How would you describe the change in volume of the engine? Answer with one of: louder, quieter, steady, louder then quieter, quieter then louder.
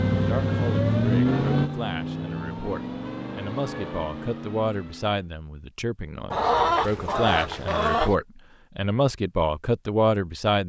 quieter.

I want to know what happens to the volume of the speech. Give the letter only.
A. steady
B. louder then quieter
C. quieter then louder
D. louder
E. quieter
D.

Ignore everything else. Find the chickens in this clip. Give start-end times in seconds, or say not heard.
6.3-8.2.